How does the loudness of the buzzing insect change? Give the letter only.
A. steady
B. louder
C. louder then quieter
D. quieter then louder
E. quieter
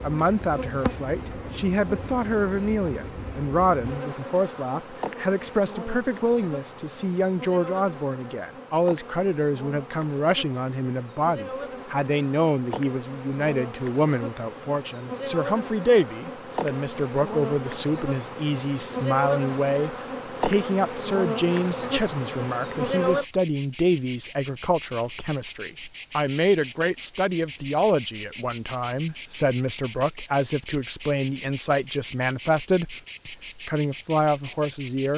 B.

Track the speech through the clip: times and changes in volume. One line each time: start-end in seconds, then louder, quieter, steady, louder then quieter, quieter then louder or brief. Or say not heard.
0.0-35.1 steady.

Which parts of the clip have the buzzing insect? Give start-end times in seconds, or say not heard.
0.0-35.1.